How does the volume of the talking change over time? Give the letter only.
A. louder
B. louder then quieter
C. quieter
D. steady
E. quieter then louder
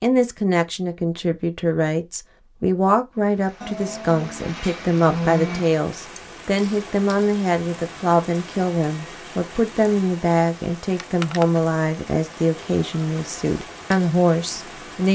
D.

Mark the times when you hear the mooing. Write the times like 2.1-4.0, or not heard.
3.6-5.6.